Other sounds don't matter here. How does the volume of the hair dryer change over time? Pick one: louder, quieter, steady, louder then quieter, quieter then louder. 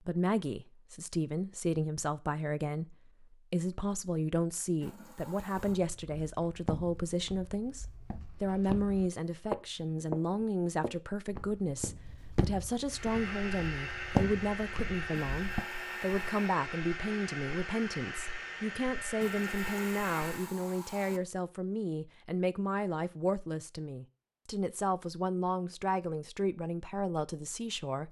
steady.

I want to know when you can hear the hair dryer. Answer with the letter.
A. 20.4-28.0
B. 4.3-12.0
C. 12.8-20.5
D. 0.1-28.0
C.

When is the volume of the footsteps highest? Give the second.
14 s.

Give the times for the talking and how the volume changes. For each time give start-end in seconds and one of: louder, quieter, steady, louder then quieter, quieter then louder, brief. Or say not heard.
0.1-28.0 steady.